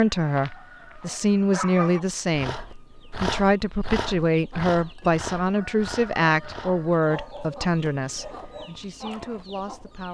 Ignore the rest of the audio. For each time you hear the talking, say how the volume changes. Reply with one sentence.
You can hear the talking from 0.0 to 10.1 s, getting quieter.